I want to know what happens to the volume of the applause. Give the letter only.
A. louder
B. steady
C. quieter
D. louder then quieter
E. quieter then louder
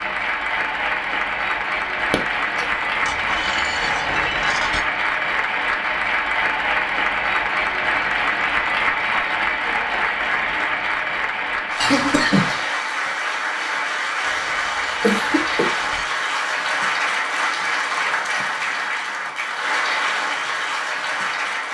B.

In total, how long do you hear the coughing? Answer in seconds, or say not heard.
2 s.